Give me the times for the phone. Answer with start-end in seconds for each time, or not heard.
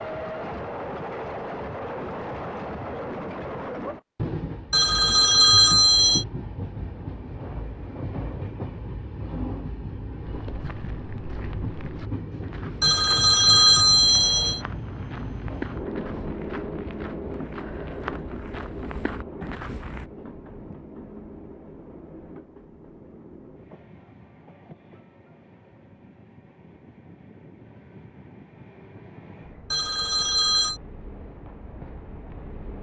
4.7-6.2, 12.8-14.6, 29.7-30.8.